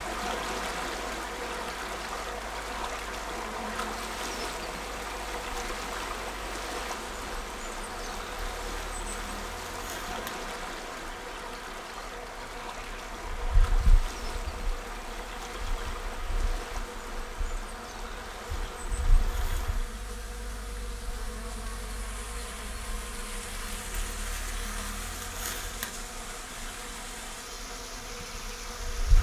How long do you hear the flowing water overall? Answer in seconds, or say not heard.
29 s.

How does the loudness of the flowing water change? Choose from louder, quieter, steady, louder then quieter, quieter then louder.
quieter.